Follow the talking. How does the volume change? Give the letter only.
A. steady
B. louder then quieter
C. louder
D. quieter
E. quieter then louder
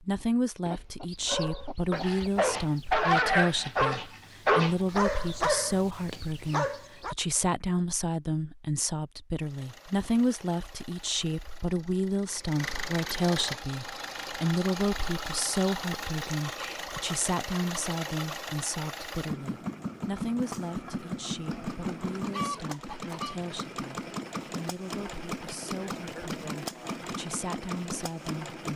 D.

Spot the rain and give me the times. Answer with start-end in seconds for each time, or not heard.
not heard.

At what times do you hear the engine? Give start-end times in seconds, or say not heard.
9.3-28.7.